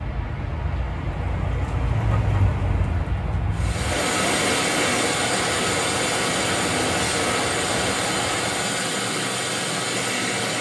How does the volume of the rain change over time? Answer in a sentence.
The loudness of the rain stays about the same.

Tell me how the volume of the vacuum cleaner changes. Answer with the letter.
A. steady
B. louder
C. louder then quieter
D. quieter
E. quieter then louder
A.